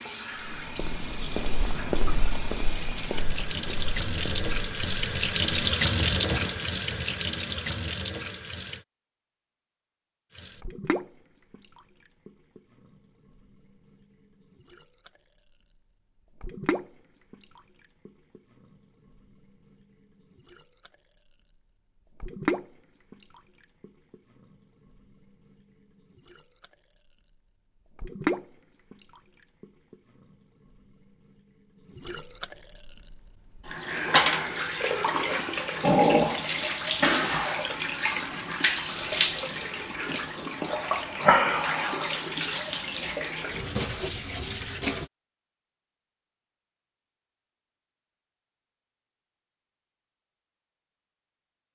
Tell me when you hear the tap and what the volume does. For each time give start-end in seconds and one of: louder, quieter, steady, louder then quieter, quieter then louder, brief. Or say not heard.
0.0-8.8 louder then quieter
10.3-45.1 louder.